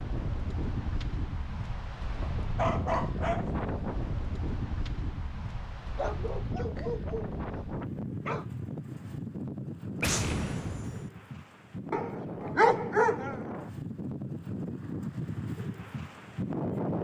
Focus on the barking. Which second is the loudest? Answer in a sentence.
The volume of the barking peaks at 13 seconds.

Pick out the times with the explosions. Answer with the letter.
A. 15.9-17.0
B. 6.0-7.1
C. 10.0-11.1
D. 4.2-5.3
C.